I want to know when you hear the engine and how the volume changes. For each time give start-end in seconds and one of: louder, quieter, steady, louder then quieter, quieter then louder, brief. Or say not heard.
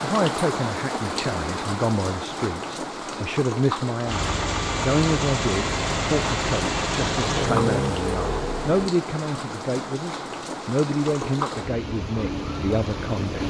4.0-8.9 steady.